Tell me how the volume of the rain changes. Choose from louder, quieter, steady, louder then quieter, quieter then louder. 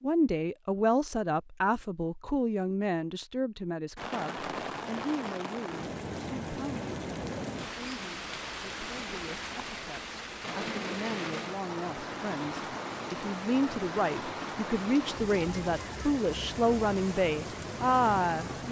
steady.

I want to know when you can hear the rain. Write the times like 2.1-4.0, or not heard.
4.0-18.6.